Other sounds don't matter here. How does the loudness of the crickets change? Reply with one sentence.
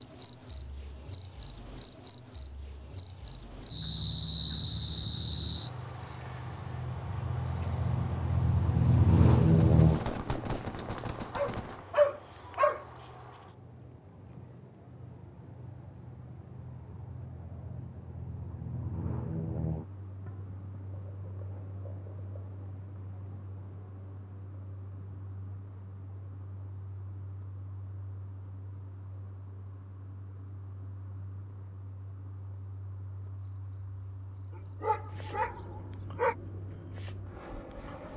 The loudness of the crickets goes down.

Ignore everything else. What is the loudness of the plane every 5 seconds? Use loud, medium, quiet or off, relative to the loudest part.
quiet, loud, quiet, quiet, quiet, quiet, quiet, quiet.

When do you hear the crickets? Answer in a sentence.
You can hear the crickets from 0.0 to 38.1 s.